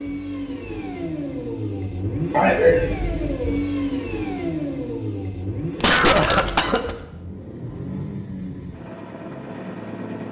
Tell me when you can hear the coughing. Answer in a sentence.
You can hear the coughing from 2.3 to 3.0 s and from 5.8 to 7.0 s.